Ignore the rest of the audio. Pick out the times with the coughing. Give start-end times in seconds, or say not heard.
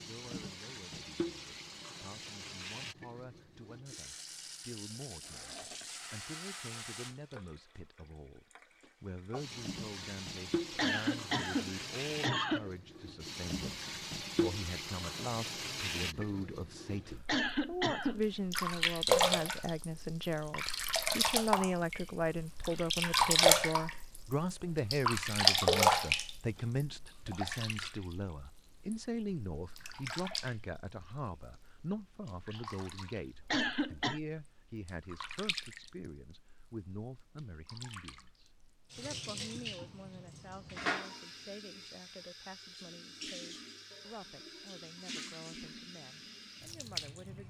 10.8-12.7, 17.2-18.2, 33.5-34.2.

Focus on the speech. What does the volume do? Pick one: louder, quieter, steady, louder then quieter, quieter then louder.
louder then quieter.